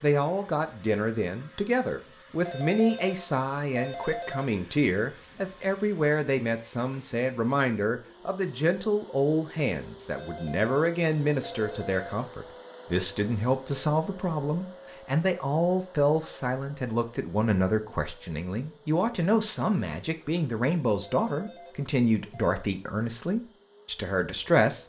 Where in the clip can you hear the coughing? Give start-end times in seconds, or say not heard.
not heard.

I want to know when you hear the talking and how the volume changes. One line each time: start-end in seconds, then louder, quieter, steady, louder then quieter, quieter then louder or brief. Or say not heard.
0.0-24.8 steady.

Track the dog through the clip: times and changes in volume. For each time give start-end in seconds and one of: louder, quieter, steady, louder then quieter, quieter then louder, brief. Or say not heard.
not heard.